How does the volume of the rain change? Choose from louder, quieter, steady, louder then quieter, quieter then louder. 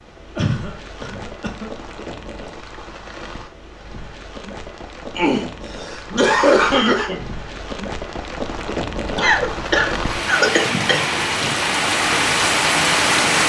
louder.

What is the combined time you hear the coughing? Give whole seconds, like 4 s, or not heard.
6 s.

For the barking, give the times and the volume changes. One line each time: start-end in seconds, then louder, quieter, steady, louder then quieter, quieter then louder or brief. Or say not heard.
not heard.